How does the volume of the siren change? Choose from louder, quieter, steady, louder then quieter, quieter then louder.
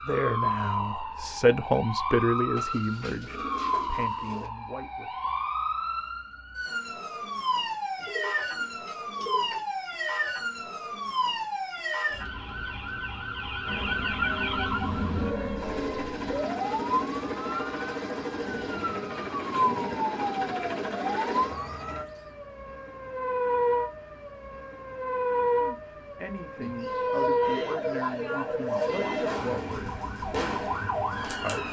steady.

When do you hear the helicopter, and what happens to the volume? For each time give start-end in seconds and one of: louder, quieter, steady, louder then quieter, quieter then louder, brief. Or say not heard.
13.7-22.1 steady.